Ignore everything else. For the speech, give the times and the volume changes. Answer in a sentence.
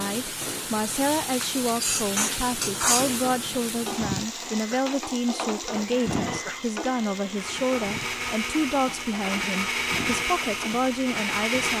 The speech can be heard from 0.0 to 11.7 s, at a steady volume.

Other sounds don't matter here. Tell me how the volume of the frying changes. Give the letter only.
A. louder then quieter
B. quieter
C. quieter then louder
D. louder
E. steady
B.